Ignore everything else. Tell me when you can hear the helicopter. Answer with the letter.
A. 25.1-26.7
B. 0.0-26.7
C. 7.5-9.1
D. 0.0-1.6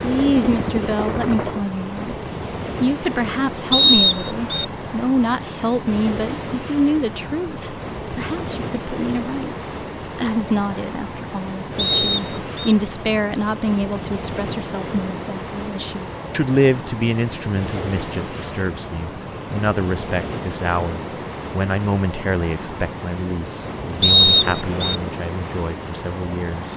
D.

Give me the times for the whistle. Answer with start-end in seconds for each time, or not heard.
3.7-4.7, 11.8-12.8, 24.0-24.9.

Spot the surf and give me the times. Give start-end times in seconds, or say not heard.
0.0-26.7.